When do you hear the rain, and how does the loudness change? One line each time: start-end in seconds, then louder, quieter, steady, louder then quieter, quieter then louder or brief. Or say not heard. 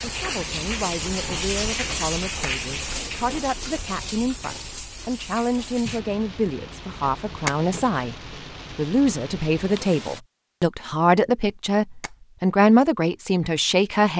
0.0-10.2 quieter.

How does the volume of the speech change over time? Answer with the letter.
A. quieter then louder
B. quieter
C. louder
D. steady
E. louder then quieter
C.